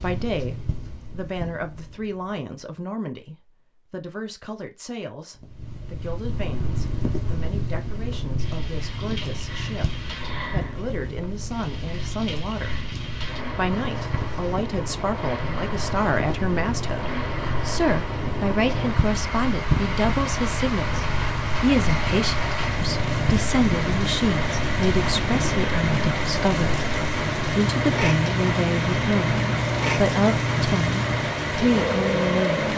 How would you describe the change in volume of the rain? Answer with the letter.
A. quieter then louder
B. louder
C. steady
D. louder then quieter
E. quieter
B.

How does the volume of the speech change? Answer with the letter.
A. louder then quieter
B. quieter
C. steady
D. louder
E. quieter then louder
D.